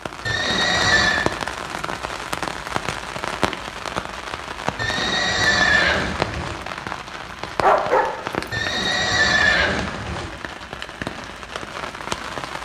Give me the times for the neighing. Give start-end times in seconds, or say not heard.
0.2-1.3, 4.8-6.6, 8.5-10.3.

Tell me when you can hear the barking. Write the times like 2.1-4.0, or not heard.
7.3-8.5.